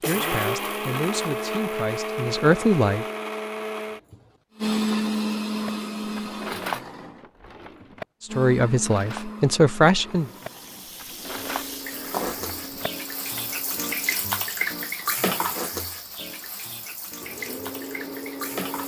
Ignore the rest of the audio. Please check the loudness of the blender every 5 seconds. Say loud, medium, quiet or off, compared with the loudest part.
loud, loud, quiet, medium.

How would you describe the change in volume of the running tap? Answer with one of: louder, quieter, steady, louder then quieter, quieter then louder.
louder then quieter.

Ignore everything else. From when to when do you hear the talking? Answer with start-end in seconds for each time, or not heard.
0.1-3.0, 8.2-10.3.